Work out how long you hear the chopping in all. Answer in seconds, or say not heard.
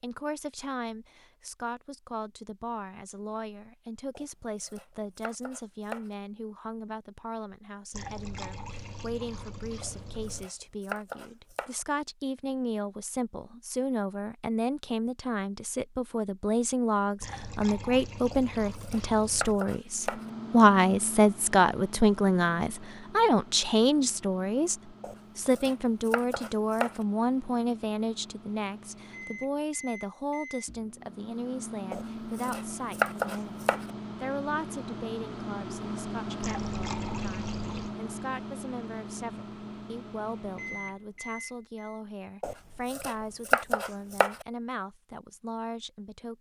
12 s.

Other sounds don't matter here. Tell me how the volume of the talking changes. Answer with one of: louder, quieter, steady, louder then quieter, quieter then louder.
louder then quieter.